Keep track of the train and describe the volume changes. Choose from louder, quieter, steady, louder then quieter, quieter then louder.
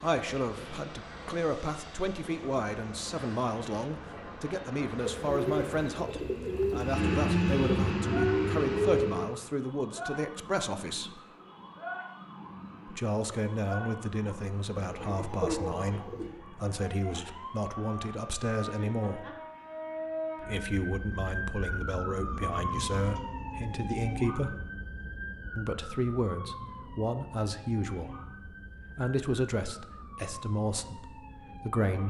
louder.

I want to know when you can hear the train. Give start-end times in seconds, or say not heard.
0.0-9.3.